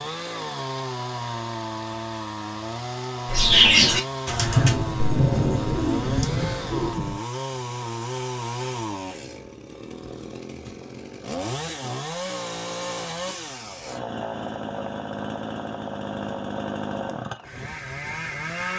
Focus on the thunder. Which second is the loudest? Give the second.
5 s.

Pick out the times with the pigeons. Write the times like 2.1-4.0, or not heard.
3.3-6.9.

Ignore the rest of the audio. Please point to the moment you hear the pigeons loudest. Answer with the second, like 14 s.
4 s.